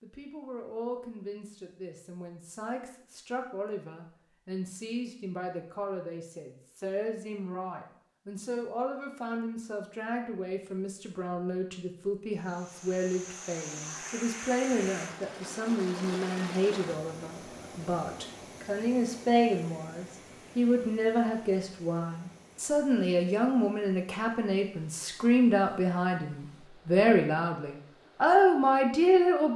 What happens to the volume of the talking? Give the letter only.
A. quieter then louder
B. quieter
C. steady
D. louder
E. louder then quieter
D.